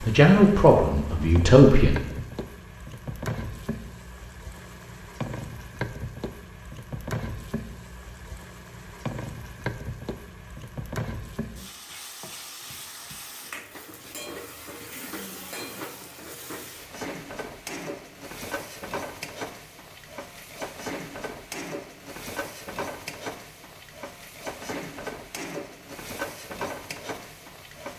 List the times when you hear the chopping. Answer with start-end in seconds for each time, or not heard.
not heard.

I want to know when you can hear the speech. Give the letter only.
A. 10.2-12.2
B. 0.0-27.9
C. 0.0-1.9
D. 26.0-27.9
C.